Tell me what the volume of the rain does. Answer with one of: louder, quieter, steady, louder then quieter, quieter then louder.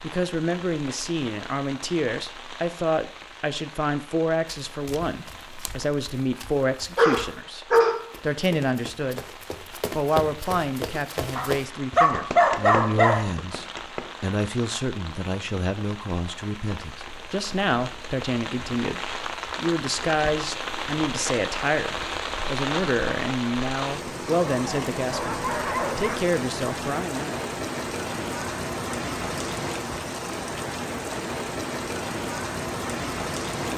louder.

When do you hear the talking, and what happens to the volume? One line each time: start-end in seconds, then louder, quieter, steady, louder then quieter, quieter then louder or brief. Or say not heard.
0.0-9.2 steady
9.9-27.4 steady.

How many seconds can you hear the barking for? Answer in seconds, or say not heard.
5 s.